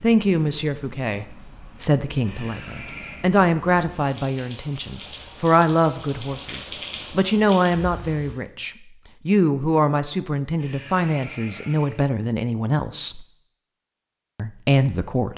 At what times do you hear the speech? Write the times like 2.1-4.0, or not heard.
0.0-13.2, 14.3-15.3.